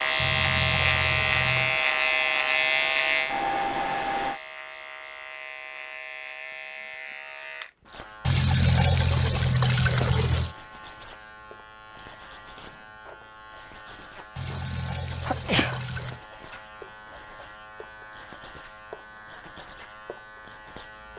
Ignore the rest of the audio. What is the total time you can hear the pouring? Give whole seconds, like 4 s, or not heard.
6 s.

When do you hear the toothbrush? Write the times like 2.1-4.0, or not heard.
not heard.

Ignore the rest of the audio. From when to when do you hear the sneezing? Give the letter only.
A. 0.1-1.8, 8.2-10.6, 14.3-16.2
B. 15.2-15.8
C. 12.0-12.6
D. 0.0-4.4
B.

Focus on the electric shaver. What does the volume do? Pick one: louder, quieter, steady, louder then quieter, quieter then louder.
quieter.